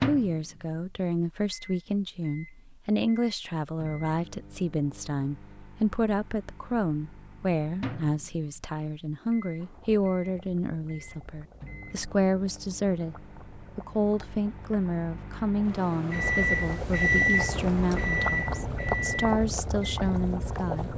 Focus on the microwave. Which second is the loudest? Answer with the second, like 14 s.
17 s.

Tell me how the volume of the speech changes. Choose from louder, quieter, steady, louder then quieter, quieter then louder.
steady.